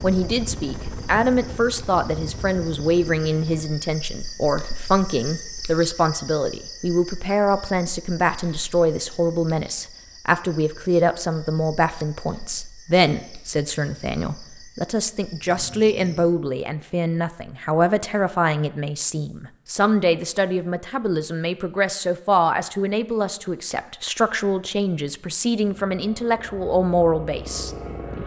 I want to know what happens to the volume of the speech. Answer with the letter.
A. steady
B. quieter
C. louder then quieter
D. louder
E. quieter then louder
A.